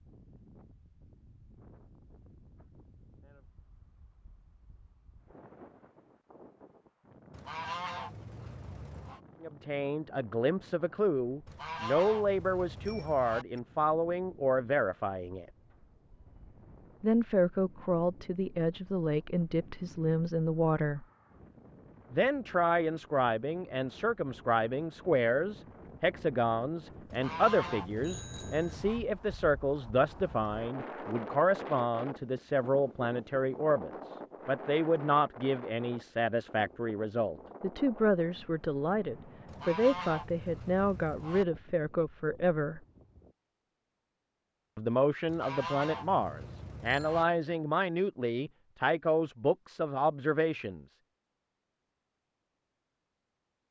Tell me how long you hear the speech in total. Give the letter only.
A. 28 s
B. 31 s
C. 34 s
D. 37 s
D.